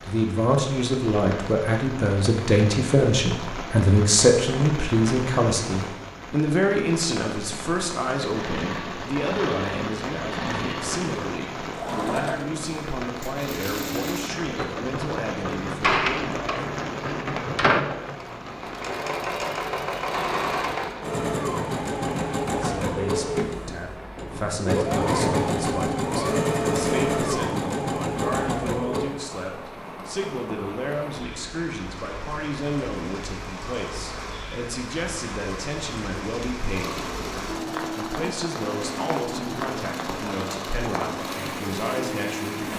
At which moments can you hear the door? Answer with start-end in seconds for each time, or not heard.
15.8-17.9.